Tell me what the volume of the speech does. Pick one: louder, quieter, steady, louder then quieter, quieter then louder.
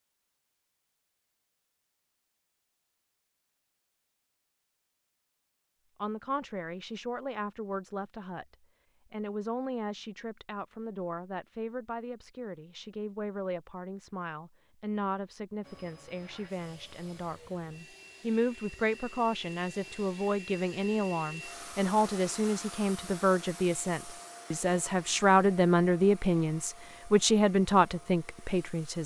louder.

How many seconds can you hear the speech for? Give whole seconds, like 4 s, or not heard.
23 s.